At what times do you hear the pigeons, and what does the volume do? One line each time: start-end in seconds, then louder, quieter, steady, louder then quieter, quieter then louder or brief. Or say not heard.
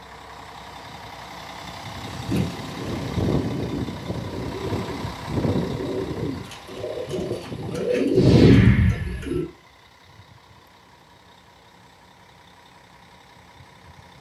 2.1-9.4 louder.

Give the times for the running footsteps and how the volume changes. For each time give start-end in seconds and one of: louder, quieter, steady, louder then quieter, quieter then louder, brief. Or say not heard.
not heard.